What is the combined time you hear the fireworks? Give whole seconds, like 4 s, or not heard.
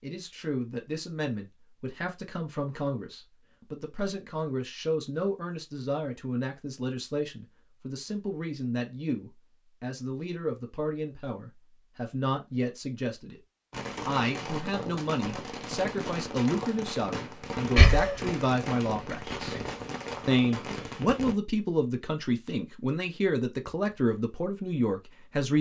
8 s.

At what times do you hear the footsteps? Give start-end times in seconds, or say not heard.
not heard.